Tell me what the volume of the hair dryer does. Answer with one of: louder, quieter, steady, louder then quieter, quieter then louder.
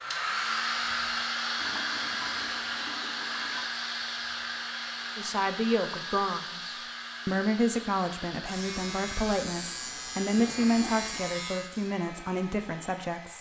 quieter.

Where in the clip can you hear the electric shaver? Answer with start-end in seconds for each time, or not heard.
8.3-11.9.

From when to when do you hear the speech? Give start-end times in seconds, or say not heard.
5.2-13.3.